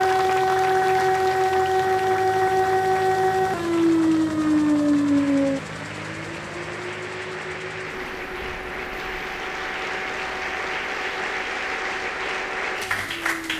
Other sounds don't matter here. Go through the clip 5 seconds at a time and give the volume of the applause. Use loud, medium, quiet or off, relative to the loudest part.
medium, medium, loud.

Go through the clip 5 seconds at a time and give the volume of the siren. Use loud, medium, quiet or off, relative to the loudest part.
loud, medium, quiet.